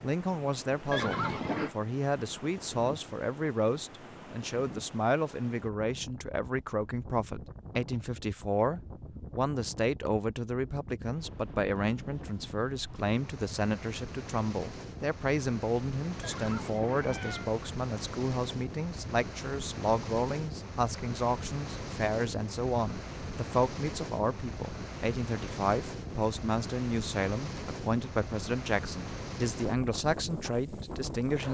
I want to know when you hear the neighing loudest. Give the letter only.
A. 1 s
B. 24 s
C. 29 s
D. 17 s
A.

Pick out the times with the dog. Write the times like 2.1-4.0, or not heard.
not heard.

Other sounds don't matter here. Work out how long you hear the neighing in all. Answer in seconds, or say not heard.
2 s.